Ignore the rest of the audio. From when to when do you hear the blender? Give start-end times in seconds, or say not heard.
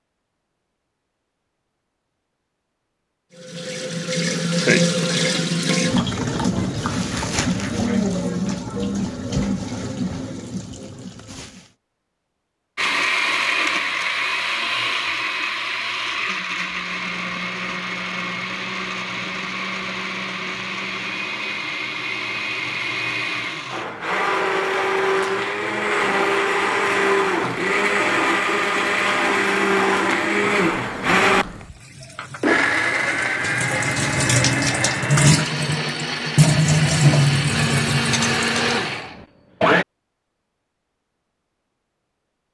12.8-39.9.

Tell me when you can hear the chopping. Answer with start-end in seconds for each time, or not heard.
not heard.